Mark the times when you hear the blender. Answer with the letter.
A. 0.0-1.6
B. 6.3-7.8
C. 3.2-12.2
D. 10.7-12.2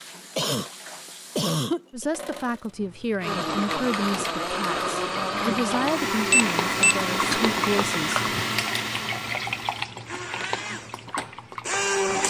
C.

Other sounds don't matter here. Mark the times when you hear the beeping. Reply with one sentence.
The beeping can be heard from 6.3 to 7.8 s.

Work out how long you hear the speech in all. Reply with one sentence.
The speech can be heard for 6 seconds in total.